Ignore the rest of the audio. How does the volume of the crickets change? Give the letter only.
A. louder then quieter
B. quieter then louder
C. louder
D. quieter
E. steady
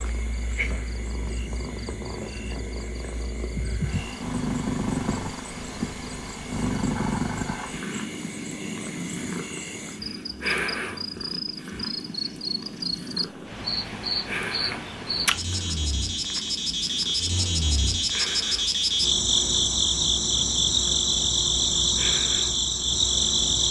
C.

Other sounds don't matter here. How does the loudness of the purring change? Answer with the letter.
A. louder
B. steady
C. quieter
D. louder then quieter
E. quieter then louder
C.